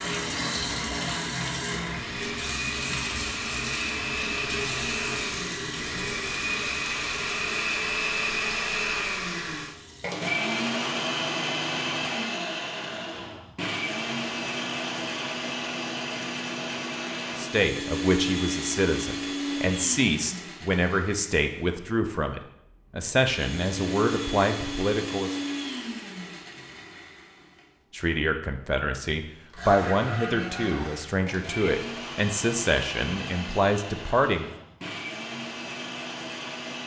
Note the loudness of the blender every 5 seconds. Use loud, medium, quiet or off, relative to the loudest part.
loud, loud, loud, loud, medium, medium, medium, medium.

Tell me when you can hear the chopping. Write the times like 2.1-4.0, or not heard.
not heard.